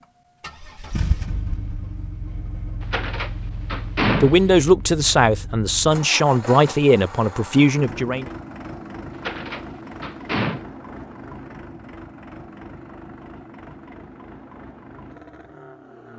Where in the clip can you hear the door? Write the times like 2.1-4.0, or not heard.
2.8-4.7, 9.2-10.7.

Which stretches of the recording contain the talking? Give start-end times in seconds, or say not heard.
4.2-8.3.